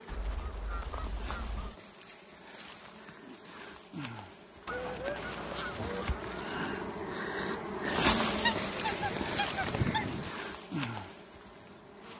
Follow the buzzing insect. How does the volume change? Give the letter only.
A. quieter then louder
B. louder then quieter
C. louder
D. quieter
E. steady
B.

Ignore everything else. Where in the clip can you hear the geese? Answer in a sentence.
The geese can be heard from 0.1 to 1.8 s, from 4.7 to 6.5 s and from 8.4 to 10.3 s.